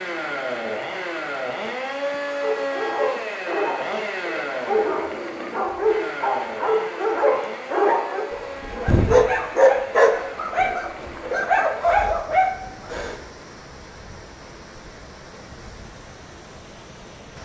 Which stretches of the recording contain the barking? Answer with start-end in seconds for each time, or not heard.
2.4-13.2.